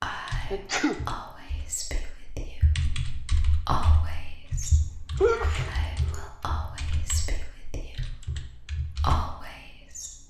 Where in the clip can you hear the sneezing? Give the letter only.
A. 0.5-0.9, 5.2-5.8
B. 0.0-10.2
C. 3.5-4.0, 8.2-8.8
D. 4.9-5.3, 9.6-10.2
A.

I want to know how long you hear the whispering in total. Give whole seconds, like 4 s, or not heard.
10 s.